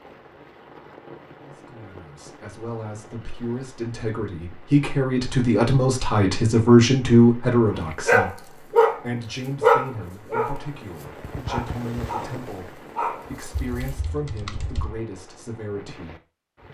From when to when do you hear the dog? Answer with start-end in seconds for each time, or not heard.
8.1-9.0, 9.6-13.9.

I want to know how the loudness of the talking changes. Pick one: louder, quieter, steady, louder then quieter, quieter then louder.
louder then quieter.